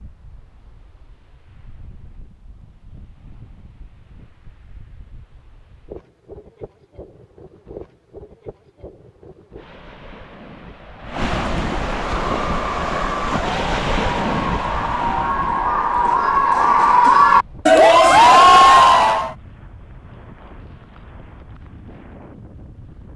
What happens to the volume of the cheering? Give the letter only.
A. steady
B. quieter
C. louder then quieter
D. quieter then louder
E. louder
E.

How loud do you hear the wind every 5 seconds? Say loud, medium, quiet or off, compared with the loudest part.
quiet, quiet, loud, medium, quiet.